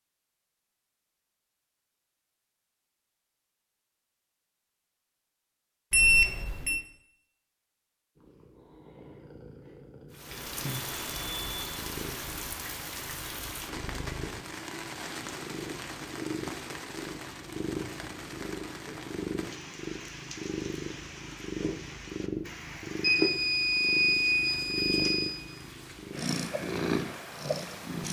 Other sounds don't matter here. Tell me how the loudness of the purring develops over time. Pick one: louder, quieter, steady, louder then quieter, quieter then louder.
louder.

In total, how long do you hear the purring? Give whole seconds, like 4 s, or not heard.
20 s.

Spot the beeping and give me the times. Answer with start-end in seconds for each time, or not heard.
5.9-6.8, 10.3-11.8, 23.0-25.4.